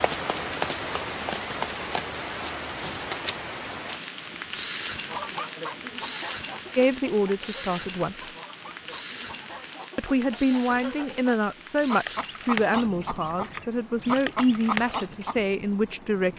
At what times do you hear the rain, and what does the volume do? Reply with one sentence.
You can hear the rain from 0.0 to 16.3 s, getting quieter.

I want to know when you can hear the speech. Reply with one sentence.
The speech can be heard from 6.8 to 8.3 s and from 9.9 to 16.3 s.